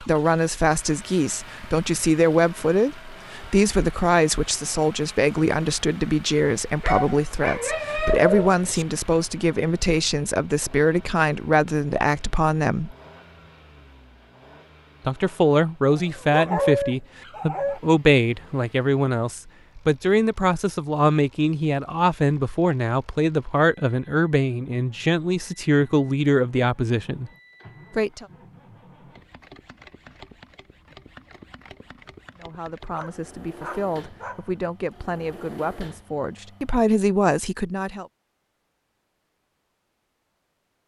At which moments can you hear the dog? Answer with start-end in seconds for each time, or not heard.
6.8-8.8, 15.9-17.8, 32.9-34.5.